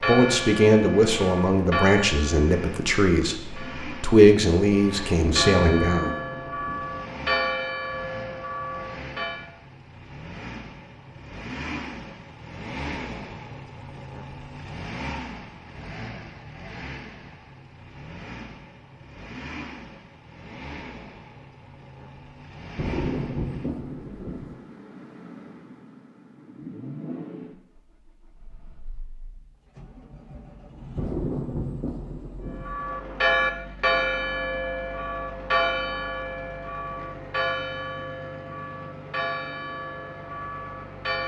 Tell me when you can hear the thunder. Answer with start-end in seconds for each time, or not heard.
5.2-7.0, 22.8-24.6, 30.9-32.8.